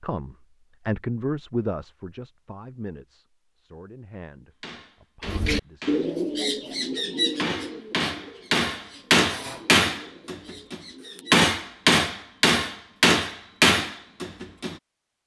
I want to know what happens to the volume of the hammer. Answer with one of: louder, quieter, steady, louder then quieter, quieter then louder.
louder.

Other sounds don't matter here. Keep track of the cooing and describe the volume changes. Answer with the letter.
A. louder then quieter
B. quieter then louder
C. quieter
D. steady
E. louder
C.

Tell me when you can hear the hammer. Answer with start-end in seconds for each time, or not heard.
4.6-14.8.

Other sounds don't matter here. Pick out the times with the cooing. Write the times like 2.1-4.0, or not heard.
5.2-11.5.